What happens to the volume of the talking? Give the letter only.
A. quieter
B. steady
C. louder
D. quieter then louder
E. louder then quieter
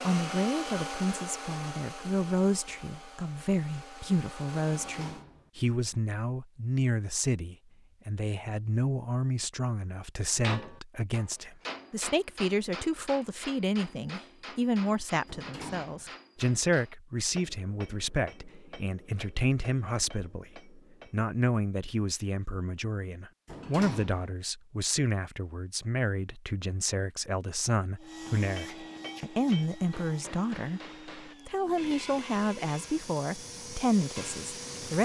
B.